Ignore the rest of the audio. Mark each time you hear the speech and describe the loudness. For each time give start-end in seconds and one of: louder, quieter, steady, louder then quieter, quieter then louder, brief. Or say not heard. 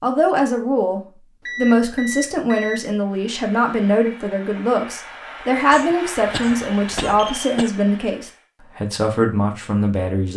0.0-10.3 steady.